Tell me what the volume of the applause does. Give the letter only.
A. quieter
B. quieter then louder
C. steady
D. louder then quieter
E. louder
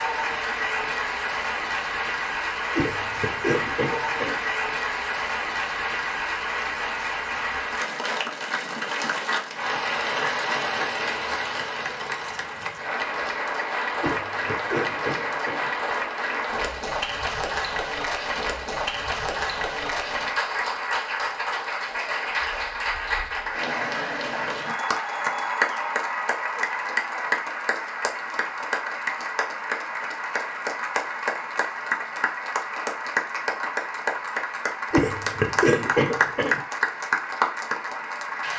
C.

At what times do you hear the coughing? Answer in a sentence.
The coughing can be heard from 2.8 to 4.3 s, from 14.0 to 15.7 s and from 34.9 to 36.6 s.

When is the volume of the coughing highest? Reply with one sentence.
The loudest moment of the coughing is at 36 seconds.